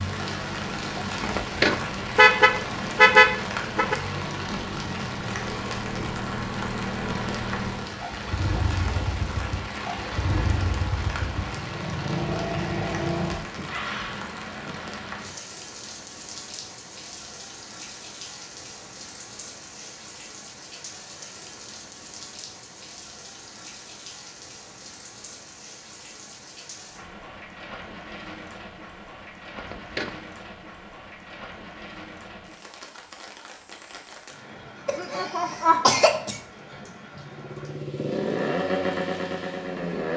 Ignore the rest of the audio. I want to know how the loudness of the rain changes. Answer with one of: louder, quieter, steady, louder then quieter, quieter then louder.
quieter.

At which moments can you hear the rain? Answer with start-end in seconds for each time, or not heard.
0.0-40.1.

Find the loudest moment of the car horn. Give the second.
3 s.